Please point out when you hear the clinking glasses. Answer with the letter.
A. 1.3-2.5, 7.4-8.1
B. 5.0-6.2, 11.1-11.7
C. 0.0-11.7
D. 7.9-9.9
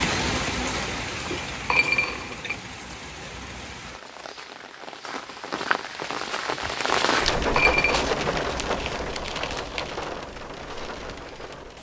A.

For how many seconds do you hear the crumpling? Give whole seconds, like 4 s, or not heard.
2 s.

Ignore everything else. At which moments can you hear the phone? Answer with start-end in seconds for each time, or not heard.
not heard.